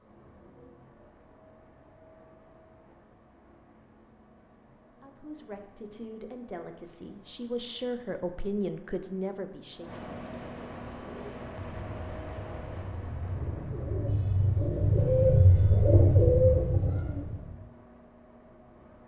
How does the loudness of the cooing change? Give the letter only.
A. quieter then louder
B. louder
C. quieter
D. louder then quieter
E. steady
B.